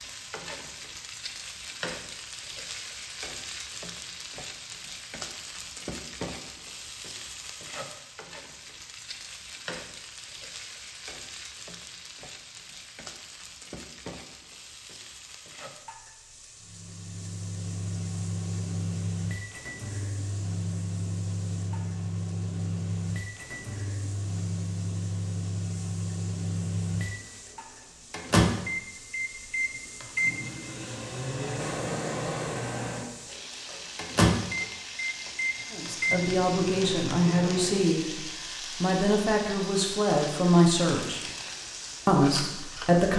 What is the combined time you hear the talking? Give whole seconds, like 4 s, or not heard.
6 s.